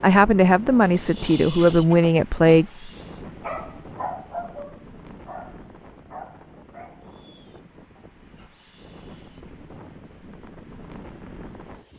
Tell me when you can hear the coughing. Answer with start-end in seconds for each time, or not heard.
not heard.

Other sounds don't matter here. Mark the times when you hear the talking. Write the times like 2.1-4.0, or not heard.
0.0-2.9.